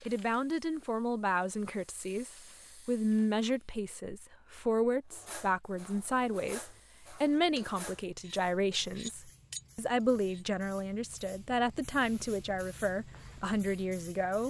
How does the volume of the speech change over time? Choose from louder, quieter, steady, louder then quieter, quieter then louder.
steady.